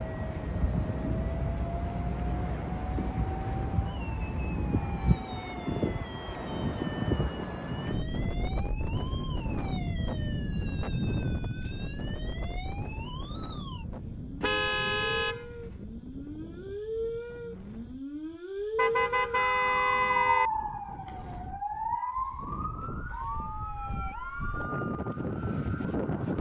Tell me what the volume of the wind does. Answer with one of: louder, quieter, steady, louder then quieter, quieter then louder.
quieter then louder.